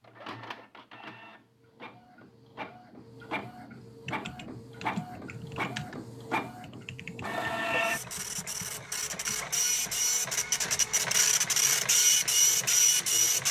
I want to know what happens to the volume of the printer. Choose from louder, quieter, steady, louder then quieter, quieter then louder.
louder.